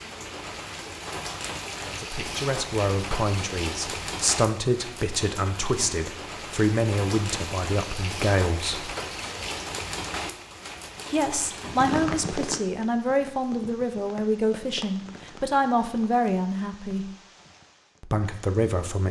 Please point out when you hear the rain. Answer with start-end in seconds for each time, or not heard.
0.0-19.0.